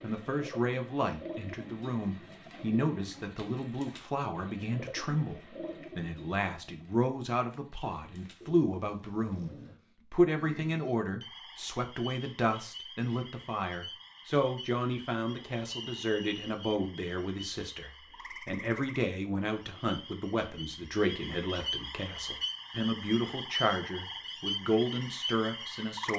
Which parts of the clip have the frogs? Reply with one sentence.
The frogs can be heard from 10.3 to 26.1 s.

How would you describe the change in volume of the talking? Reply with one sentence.
The loudness of the talking stays about the same.